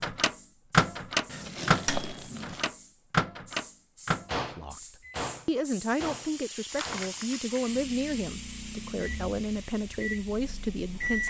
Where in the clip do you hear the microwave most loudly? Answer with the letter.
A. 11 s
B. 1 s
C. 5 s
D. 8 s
B.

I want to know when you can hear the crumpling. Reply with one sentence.
The crumpling can be heard from 1.2 to 2.7 s and from 6.7 to 7.7 s.